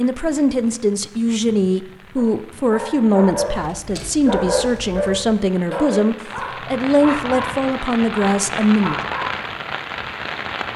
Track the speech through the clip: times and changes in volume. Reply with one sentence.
You can hear the speech from 0.0 to 9.0 s, at a steady volume.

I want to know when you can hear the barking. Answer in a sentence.
The barking can be heard from 2.1 to 9.6 s.